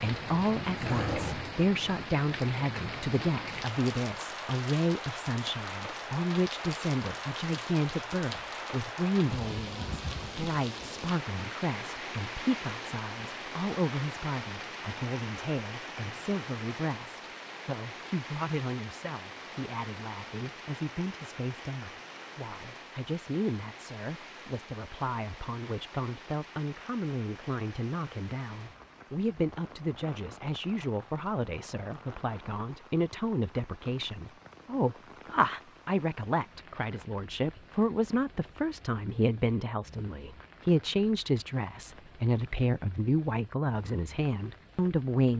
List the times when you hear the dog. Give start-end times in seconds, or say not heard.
0.7-1.5.